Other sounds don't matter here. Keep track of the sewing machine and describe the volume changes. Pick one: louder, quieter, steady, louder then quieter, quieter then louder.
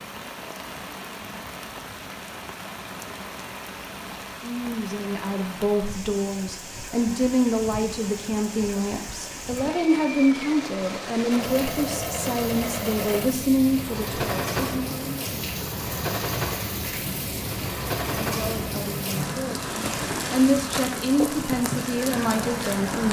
steady.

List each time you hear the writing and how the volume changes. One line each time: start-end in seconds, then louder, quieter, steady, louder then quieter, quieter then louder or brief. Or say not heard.
not heard.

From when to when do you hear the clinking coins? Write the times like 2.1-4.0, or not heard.
not heard.